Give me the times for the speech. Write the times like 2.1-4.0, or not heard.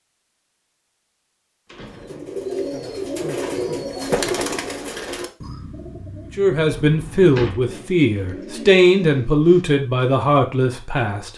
6.3-11.3.